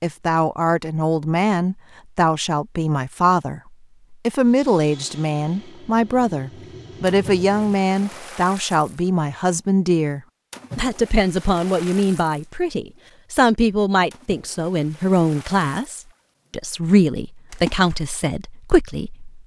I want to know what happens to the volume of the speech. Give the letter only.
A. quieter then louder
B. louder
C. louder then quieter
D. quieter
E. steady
E.